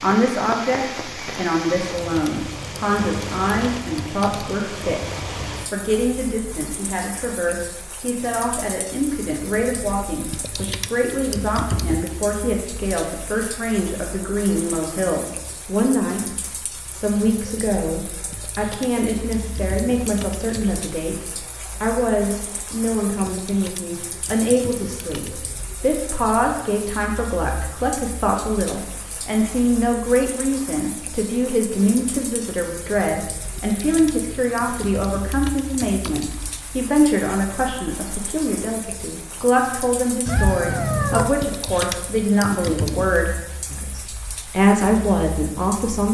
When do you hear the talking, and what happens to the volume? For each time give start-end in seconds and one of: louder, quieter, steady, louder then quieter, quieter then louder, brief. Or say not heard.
0.0-46.0 steady.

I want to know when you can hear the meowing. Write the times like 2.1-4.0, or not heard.
40.2-41.3.